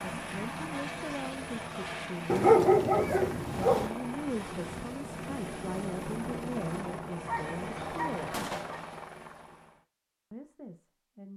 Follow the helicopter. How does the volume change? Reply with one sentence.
The volume of the helicopter stays about the same.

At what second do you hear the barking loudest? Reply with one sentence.
The volume of the barking peaks at 3 seconds.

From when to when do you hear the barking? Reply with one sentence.
You can hear the barking from 2.2 to 3.9 s and from 7.2 to 8.8 s.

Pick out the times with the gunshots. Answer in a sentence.
You can hear the gunshots from 8.3 to 8.9 s.